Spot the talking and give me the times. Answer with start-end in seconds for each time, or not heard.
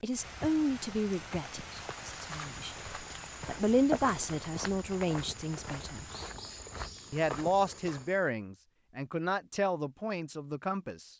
0.0-6.0, 7.1-11.1.